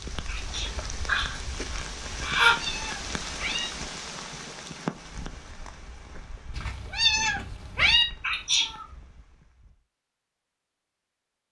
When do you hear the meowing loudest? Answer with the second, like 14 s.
8 s.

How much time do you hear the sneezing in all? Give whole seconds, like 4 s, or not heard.
3 s.